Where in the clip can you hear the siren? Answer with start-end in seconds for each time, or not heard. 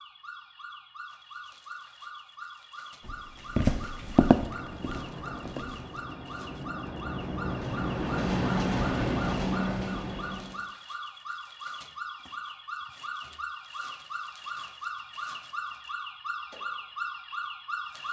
0.0-18.0.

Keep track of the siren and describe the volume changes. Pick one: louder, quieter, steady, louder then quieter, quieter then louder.
louder.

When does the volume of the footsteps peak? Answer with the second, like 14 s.
4 s.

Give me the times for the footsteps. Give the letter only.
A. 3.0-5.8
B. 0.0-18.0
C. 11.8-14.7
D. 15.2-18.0
A.